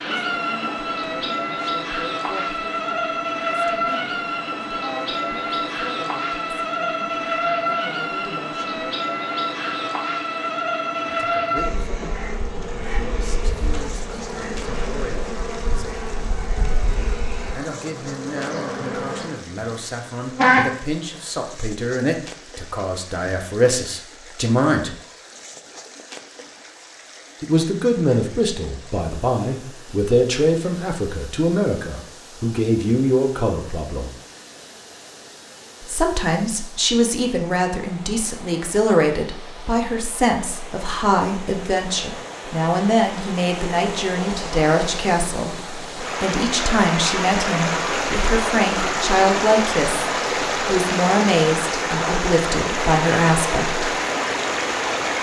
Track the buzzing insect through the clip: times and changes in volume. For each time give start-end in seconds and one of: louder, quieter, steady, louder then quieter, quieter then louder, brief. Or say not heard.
0.0-20.6 quieter.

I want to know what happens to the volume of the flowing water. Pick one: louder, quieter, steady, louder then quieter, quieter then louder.
louder.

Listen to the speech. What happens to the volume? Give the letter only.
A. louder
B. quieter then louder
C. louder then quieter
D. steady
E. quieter
A.